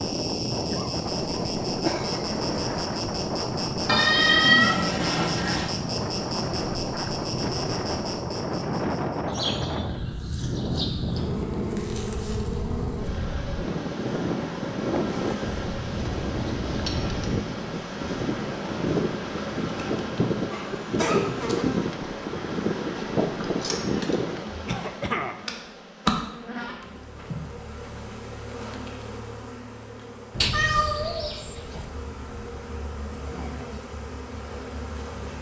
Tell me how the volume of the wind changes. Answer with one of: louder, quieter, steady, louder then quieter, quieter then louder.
steady.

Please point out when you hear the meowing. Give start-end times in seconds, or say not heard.
3.9-5.7, 30.4-31.9.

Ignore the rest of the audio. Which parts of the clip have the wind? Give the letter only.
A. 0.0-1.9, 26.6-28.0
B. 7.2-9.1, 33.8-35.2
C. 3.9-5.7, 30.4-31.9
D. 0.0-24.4
D.